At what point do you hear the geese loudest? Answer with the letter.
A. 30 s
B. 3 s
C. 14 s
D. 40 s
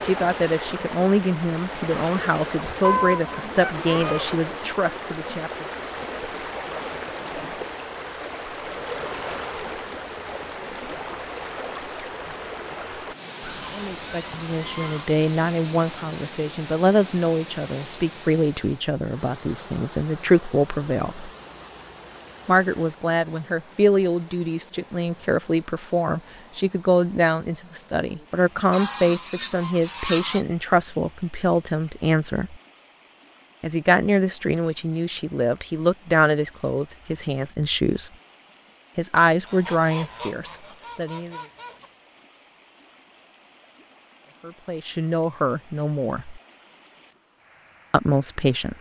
B.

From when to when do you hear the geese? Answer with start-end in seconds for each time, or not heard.
2.8-4.3, 13.4-15.2, 28.7-30.4, 39.5-41.9.